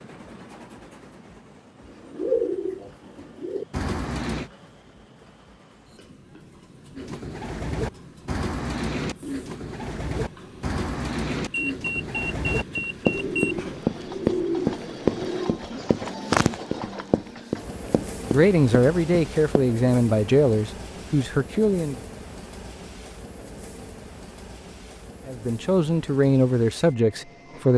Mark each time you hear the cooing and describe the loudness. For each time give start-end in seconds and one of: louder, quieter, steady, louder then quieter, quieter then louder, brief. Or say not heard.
1.9-4.5 brief
7.0-16.6 steady.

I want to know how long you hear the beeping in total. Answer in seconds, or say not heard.
2 s.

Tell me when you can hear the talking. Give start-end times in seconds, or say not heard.
18.3-22.1, 25.2-27.7.